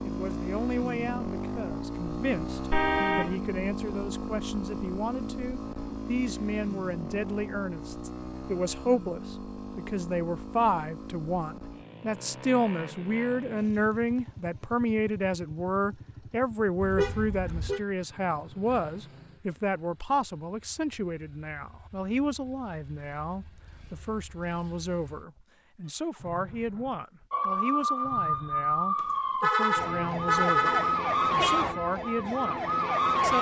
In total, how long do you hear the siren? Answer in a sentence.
You can hear the siren for 6 seconds altogether.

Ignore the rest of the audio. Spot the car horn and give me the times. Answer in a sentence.
You can hear the car horn from 2.7 to 3.4 s, from 16.8 to 17.8 s and from 28.9 to 31.6 s.